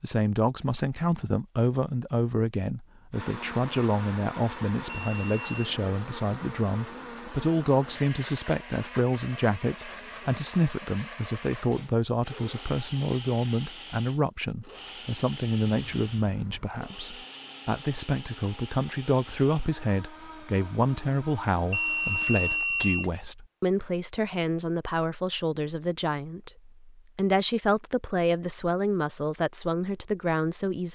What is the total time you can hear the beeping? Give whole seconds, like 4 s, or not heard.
3 s.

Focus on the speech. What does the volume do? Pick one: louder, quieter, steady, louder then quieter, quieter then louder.
steady.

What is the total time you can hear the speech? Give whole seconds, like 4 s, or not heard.
31 s.